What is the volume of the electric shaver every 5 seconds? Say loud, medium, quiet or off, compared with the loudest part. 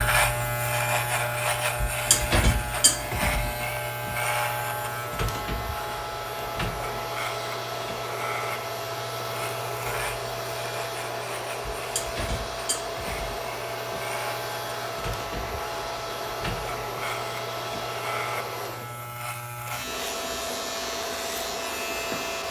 loud, medium, medium, medium, medium.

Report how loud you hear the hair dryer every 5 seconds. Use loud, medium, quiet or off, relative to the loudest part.
medium, loud, loud, loud, loud.